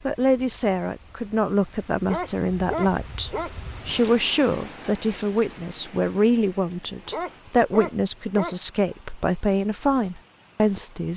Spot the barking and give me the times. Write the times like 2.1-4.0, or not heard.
2.0-3.5, 7.1-8.6.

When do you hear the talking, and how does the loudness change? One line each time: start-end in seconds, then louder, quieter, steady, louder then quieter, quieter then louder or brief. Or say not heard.
0.1-11.1 steady.